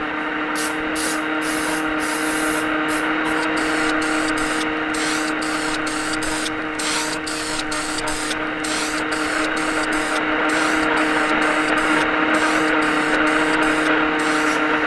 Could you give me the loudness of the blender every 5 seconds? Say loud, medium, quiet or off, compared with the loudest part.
loud, medium, loud.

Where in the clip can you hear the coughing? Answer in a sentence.
You can't hear the coughing here.